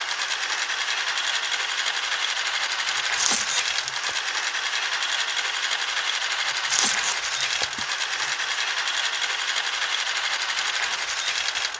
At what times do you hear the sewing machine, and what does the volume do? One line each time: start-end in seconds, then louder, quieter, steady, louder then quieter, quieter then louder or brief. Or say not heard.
0.0-11.7 steady.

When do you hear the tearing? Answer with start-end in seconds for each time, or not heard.
3.0-4.2, 6.5-8.4.